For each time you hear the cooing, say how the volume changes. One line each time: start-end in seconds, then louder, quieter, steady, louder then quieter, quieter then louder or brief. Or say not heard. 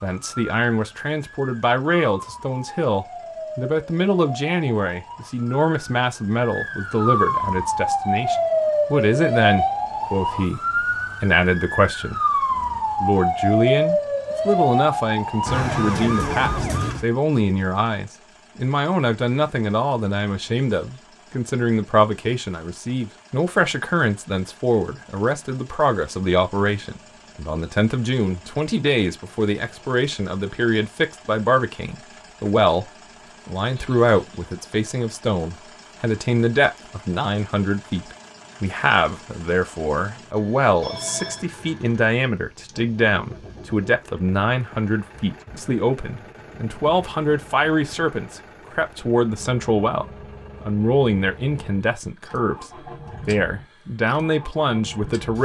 not heard.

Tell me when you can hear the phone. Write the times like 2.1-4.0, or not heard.
40.8-41.5.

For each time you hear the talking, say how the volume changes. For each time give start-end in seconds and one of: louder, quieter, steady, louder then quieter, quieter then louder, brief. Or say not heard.
0.0-12.4 steady
13.0-55.4 steady.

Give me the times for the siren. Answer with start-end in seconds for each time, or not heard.
0.1-17.1.